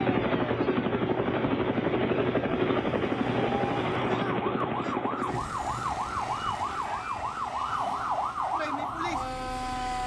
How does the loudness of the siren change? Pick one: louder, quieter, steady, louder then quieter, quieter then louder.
louder.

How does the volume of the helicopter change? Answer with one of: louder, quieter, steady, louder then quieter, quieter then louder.
quieter.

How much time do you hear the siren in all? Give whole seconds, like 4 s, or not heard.
10 s.